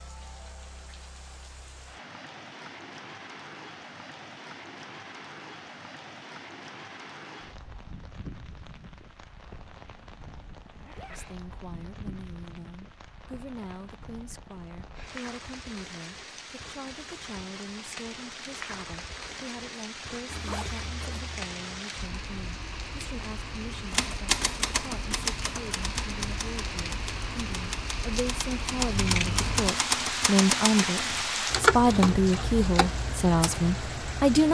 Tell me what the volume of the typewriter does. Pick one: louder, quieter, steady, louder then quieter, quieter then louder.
quieter then louder.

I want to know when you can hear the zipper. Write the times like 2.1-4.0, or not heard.
10.7-11.2, 20.2-21.9.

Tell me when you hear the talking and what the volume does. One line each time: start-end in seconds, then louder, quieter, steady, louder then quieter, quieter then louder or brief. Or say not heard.
11.1-34.4 louder.